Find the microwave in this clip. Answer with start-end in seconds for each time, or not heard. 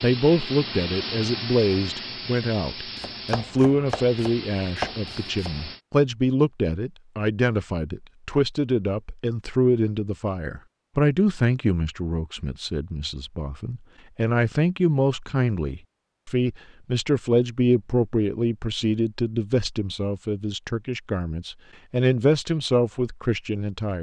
not heard.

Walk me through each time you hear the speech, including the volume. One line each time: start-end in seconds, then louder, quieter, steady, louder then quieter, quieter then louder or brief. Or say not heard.
0.0-23.9 steady.